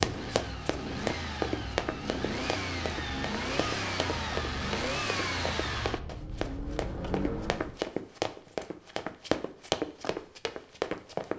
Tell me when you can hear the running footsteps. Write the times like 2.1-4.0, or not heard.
0.0-11.3.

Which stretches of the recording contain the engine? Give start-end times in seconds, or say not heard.
0.0-7.8.